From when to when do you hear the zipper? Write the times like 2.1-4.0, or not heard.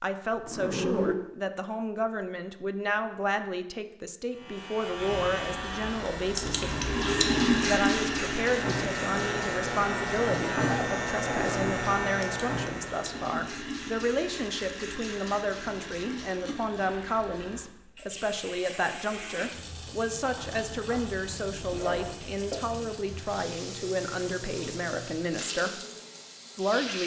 0.3-1.1, 10.7-11.7, 20.4-22.3.